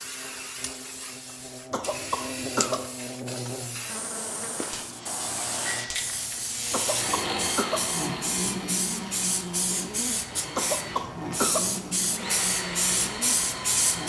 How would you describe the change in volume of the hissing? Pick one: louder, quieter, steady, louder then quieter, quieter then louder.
louder.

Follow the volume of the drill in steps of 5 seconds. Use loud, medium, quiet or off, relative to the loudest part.
off, loud, loud.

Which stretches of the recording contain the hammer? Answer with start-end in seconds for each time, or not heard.
not heard.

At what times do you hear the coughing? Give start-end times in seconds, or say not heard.
1.7-2.9, 6.7-7.9, 10.6-11.7.